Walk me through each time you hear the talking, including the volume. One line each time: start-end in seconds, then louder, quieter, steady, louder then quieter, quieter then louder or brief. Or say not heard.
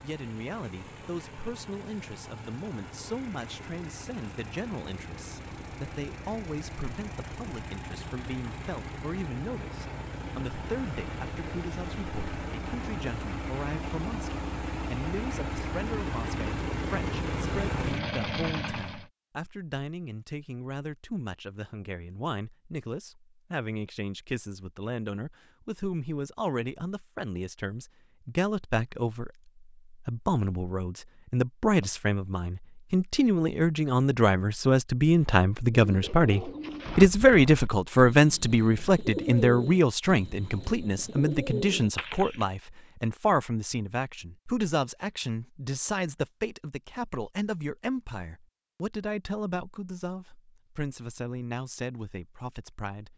0.0-53.1 louder then quieter.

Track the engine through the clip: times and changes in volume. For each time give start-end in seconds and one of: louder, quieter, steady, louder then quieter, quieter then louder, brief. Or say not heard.
0.0-19.1 louder.